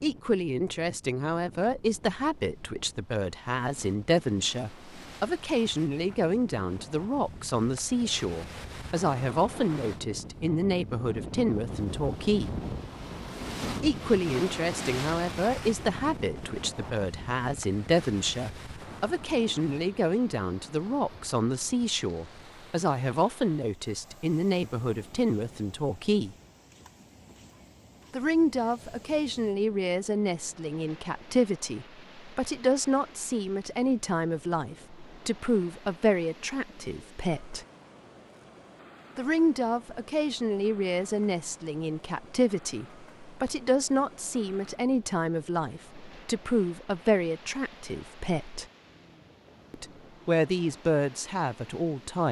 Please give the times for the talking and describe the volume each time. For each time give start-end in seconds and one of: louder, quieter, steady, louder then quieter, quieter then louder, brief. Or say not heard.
0.0-12.5 steady
13.8-26.4 steady
28.1-37.6 steady
39.1-48.6 steady
49.7-52.2 brief.